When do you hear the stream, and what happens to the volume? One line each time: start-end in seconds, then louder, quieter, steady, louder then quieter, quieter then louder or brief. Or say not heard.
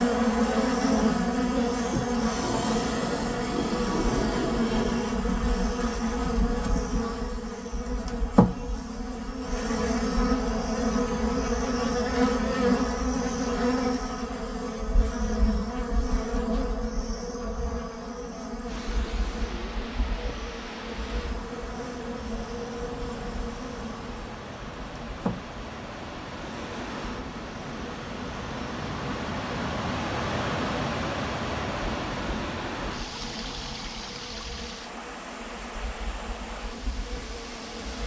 18.6-38.0 louder then quieter.